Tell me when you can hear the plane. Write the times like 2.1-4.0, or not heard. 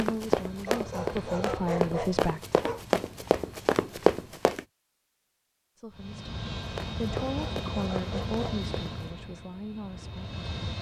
0.1-4.7, 5.9-10.7.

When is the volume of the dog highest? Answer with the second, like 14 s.
2 s.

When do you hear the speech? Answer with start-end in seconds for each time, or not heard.
0.0-2.4, 5.8-10.7.